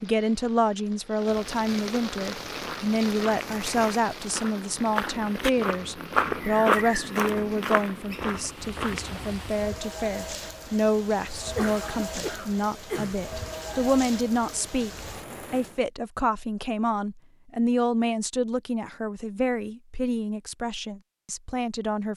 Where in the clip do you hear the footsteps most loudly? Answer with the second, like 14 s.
7 s.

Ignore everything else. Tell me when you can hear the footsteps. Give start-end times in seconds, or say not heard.
2.1-9.4.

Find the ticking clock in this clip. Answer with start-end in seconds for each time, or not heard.
not heard.